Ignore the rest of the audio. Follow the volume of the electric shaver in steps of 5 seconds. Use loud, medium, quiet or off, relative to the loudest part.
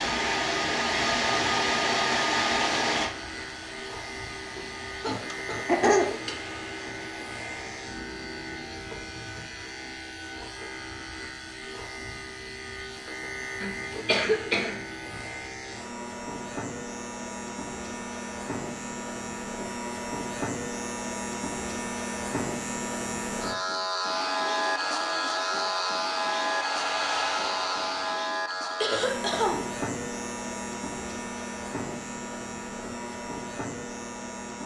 medium, medium, medium, medium, loud, loud, medium.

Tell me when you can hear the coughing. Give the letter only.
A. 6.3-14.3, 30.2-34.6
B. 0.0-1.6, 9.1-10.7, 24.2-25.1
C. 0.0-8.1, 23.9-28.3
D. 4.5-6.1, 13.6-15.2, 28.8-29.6
D.